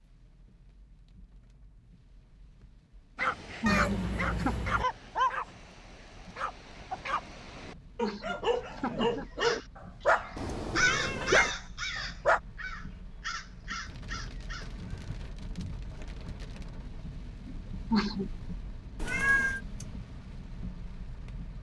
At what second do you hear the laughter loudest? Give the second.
18 s.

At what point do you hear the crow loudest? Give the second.
11 s.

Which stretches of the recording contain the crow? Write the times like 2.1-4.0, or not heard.
9.4-15.9.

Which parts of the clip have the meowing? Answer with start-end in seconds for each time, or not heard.
3.6-4.8, 10.3-11.6, 19.0-19.6.